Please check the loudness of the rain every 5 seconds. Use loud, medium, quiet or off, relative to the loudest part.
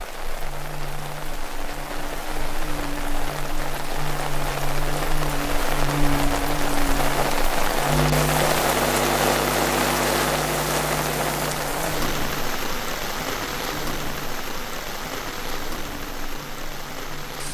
medium, loud, loud, medium.